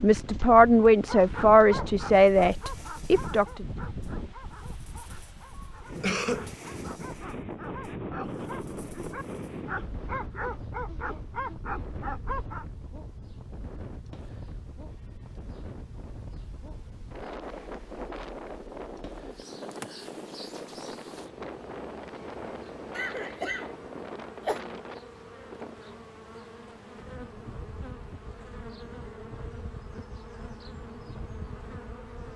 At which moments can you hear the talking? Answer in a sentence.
The talking can be heard from 0.0 to 3.6 s.